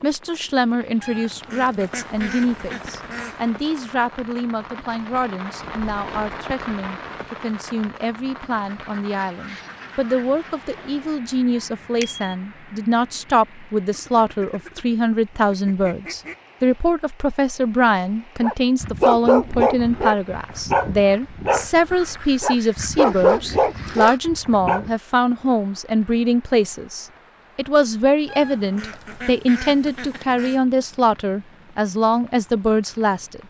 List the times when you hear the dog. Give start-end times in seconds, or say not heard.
18.4-24.9.